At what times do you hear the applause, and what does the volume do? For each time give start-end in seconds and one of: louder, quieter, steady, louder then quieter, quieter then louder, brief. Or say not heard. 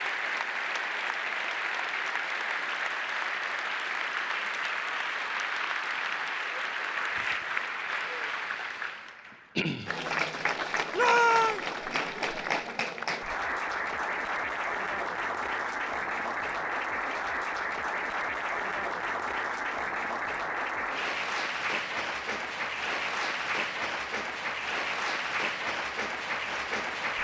0.0-27.1 steady.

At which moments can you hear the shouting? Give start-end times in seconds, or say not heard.
10.9-11.6.